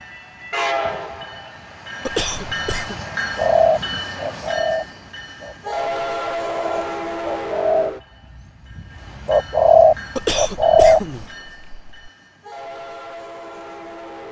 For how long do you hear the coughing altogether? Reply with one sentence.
The coughing can be heard for 3 seconds in total.